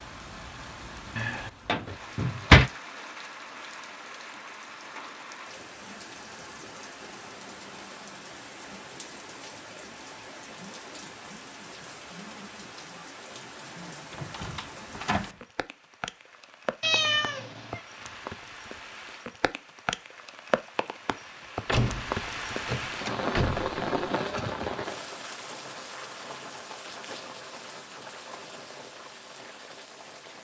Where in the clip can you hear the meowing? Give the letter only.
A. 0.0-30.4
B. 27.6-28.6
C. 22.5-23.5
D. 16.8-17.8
D.